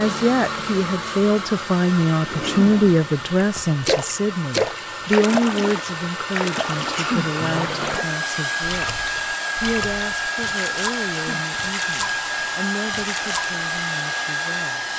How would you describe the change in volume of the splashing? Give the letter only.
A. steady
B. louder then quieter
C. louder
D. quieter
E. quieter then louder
D.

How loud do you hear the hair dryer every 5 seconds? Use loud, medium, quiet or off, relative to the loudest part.
medium, loud, loud.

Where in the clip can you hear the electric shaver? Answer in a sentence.
The electric shaver can't be heard in this clip.